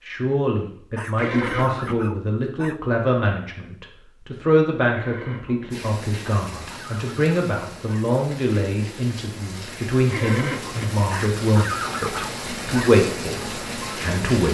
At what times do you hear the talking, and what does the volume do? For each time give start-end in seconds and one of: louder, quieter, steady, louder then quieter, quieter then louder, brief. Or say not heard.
0.1-14.4 steady.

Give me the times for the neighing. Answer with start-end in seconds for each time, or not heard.
1.1-1.9, 4.9-5.7, 10.1-10.9.